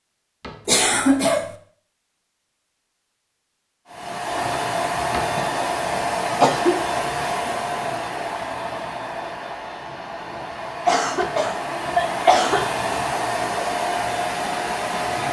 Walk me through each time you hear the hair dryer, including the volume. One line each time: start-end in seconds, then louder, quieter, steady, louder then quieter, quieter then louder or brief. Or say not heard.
3.9-15.2 quieter then louder.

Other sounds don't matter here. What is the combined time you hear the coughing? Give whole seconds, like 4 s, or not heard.
4 s.